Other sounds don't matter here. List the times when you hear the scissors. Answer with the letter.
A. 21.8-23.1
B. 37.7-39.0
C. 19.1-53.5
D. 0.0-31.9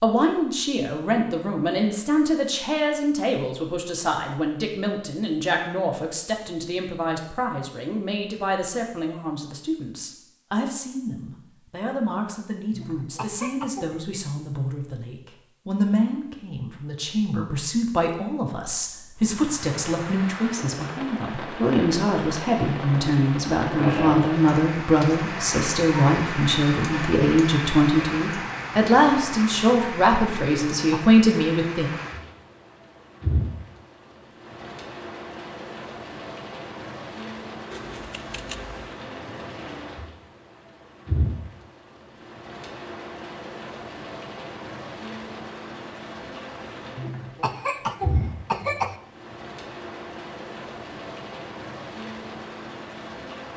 B.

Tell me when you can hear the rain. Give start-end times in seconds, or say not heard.
19.1-53.5.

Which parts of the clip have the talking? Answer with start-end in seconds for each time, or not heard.
0.0-31.9.